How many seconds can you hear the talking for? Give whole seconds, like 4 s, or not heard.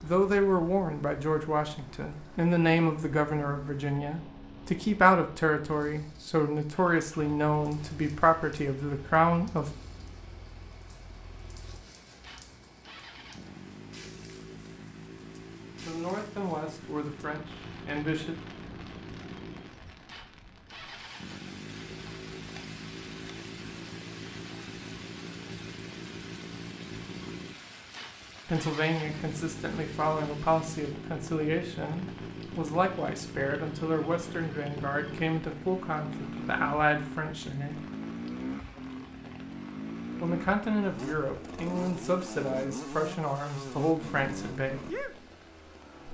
26 s.